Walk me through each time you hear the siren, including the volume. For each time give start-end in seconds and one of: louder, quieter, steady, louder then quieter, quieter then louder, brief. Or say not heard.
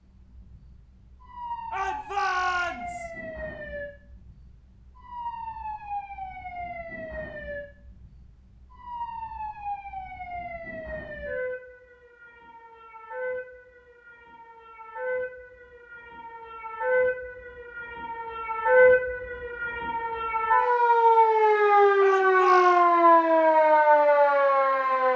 0.1-25.1 louder.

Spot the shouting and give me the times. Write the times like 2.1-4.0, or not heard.
1.7-3.1, 22.0-22.9.